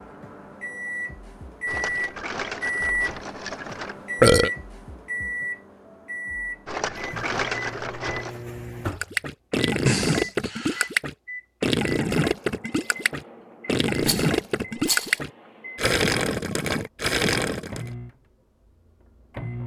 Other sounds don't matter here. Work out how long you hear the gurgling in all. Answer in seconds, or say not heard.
9 s.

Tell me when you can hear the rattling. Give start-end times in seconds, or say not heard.
1.6-4.0, 6.7-8.4, 14.0-15.2.